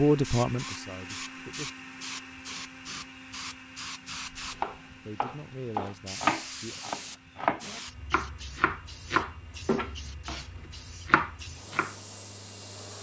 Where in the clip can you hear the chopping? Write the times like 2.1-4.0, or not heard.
4.5-11.9.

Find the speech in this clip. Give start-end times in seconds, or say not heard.
0.0-1.7, 5.0-6.8.